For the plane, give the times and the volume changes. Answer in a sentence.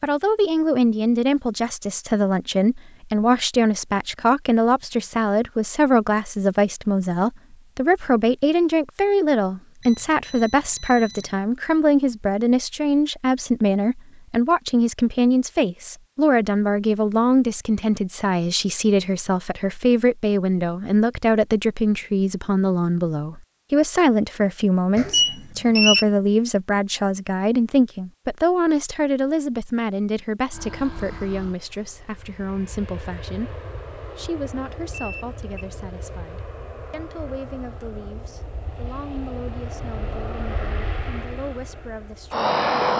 You can hear the plane from 30.5 to 42.9 s, getting louder.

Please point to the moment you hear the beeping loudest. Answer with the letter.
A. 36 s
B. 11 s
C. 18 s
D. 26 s
D.